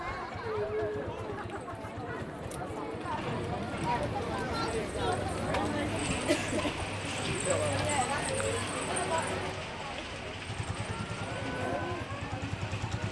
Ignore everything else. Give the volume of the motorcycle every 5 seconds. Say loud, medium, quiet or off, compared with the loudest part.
loud, off, loud.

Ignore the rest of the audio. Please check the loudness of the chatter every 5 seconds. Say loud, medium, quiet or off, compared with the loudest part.
loud, loud, medium.